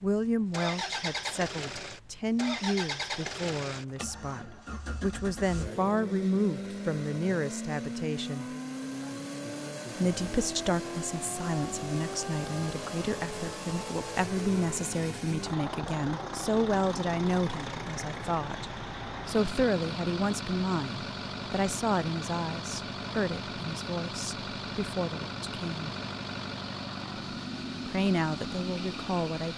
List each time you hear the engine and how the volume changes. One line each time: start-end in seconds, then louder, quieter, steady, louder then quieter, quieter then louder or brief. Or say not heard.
0.0-29.5 steady.